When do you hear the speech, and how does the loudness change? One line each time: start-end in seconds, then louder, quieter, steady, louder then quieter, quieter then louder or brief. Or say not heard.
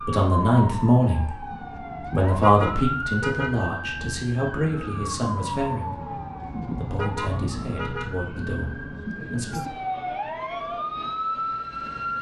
0.1-1.5 brief
2.1-9.7 quieter.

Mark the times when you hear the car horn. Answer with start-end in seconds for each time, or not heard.
2.4-3.6, 7.0-8.2.